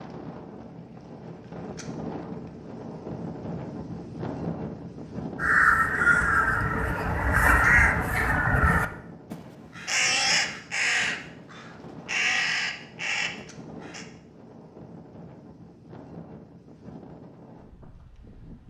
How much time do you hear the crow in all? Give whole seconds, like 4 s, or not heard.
9 s.